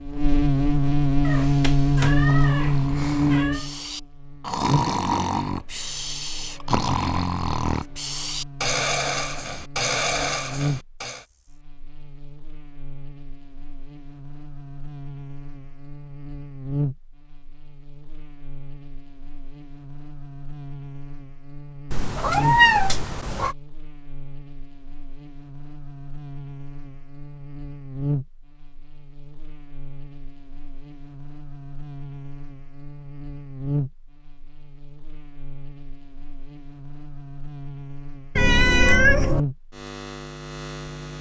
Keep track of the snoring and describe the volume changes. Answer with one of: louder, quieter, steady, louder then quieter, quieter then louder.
louder.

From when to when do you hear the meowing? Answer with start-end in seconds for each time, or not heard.
1.2-3.6, 21.9-23.6, 38.4-39.4.